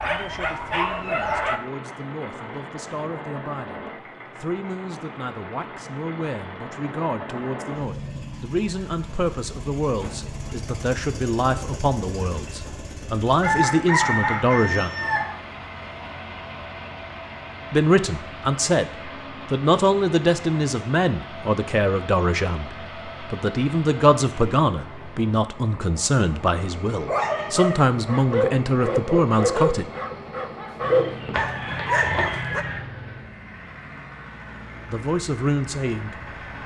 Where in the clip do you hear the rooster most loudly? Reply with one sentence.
The loudest moment of the rooster is at 14 seconds.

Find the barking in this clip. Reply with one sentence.
You can hear the barking from 0.0 to 1.6 s and from 27.1 to 32.6 s.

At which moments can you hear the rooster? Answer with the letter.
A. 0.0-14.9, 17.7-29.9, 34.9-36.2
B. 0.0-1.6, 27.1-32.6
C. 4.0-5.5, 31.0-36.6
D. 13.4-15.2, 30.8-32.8
D.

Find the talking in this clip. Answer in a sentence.
The talking can be heard from 0.0 to 14.9 s, from 17.7 to 29.9 s and from 34.9 to 36.2 s.